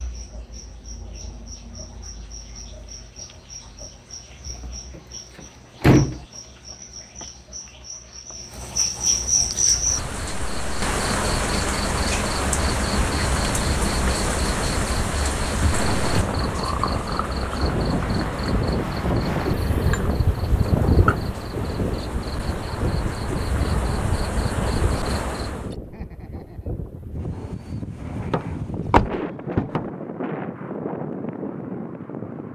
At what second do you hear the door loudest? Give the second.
6 s.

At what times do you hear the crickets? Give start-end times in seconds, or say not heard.
0.0-25.8.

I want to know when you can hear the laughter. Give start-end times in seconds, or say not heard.
25.8-26.8.